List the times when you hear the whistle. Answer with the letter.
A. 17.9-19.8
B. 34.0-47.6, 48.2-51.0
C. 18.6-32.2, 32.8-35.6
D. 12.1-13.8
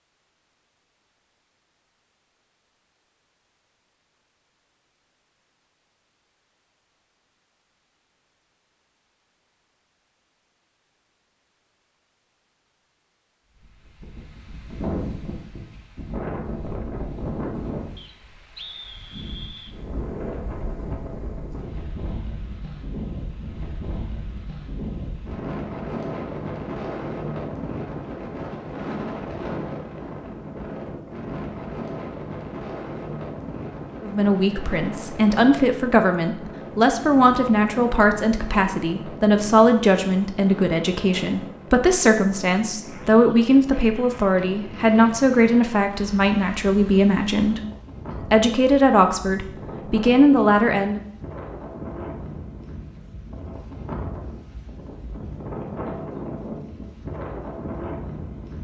A.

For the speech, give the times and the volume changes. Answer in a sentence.
You can hear the speech from 34.0 to 47.6 s, at a steady volume; and briefly from 48.2 to 51.0 s.